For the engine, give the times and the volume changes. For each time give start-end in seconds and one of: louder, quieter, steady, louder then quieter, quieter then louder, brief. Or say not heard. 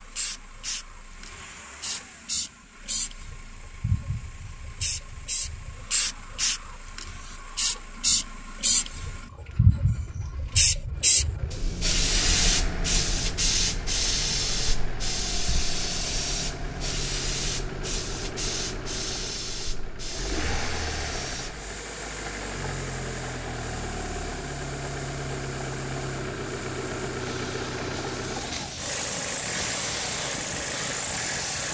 0.0-31.6 louder.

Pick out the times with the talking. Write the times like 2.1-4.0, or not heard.
not heard.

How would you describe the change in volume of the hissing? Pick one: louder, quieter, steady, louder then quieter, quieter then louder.
louder then quieter.